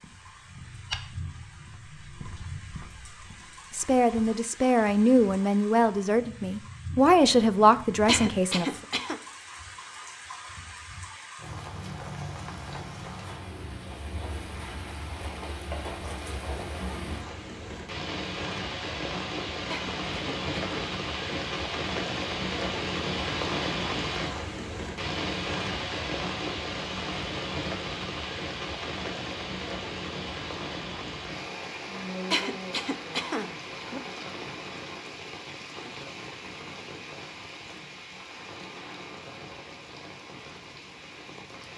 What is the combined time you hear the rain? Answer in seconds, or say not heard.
42 s.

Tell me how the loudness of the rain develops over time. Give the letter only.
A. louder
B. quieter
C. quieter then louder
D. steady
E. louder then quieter
E.